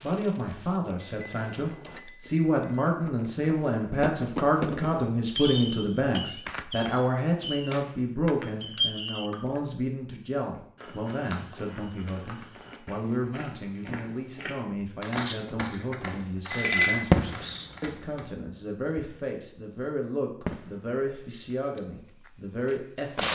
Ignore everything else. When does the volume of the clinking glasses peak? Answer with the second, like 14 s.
17 s.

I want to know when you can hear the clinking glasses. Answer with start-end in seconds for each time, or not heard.
1.0-2.8, 8.8-9.6, 16.5-17.7.